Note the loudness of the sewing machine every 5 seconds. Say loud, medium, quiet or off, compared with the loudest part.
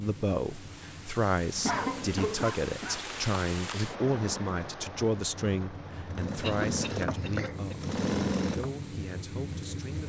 medium, loud.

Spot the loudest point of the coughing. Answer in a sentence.
The volume of the coughing peaks at 2 seconds.